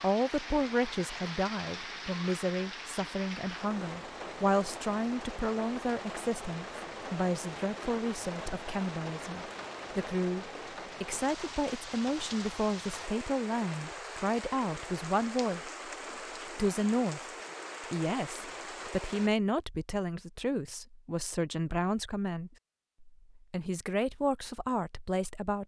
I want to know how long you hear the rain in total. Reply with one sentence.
You can hear the rain for 19 seconds altogether.